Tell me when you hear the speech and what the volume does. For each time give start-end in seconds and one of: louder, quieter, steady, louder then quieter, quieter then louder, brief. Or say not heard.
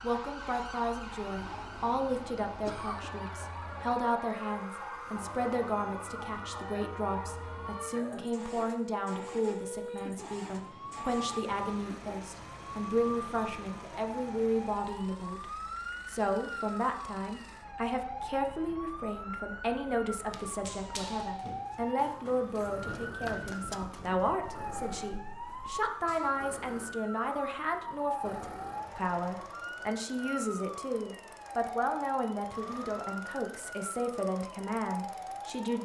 0.0-15.4 steady
16.1-35.8 steady.